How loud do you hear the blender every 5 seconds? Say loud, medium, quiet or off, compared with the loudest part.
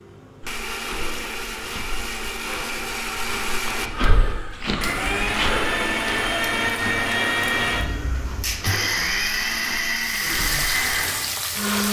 medium, loud, loud.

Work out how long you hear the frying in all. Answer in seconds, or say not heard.
2 s.